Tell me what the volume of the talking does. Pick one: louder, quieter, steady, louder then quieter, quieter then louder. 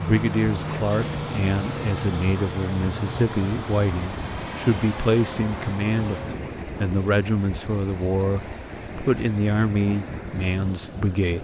steady.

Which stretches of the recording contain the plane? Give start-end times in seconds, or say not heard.
0.0-6.4.